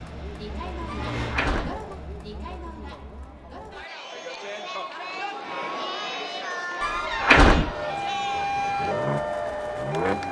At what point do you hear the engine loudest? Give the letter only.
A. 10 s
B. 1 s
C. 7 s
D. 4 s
A.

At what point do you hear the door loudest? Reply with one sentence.
The loudest moment of the door is at 7 seconds.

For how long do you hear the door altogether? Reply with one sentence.
You can hear the door for 2 seconds altogether.